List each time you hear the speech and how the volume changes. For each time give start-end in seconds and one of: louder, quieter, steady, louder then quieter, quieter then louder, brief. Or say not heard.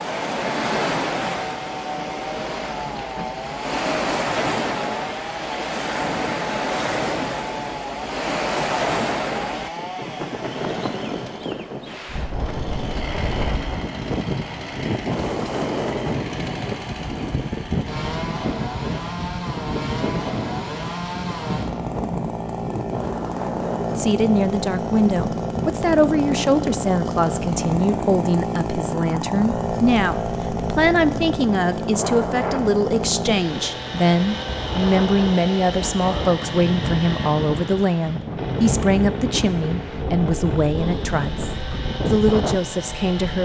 23.9-43.4 steady.